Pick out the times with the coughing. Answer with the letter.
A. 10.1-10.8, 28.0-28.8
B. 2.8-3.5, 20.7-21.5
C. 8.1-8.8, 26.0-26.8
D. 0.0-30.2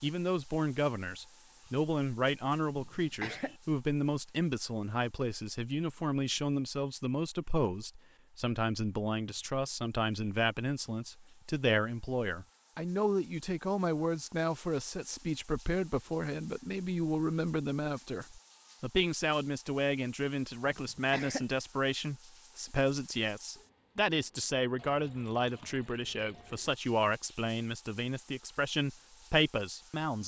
B.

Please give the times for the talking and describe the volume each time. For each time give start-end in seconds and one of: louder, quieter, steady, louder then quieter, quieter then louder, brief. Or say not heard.
0.0-30.2 steady.